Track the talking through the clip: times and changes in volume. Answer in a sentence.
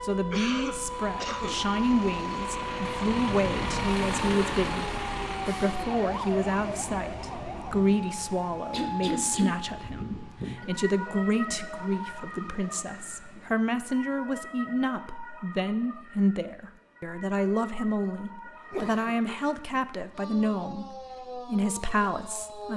The talking can be heard from 0.0 to 22.7 s, at a steady volume.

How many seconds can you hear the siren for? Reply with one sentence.
You can hear the siren for 23 seconds altogether.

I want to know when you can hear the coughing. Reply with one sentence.
You can hear the coughing from 0.3 to 1.6 s, from 8.7 to 9.6 s and from 18.4 to 19.4 s.